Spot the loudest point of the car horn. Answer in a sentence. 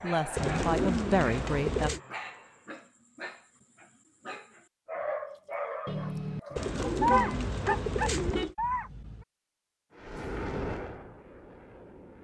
The loudest moment of the car horn is at 7 seconds.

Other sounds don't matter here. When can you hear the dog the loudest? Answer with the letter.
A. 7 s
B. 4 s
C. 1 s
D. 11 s
A.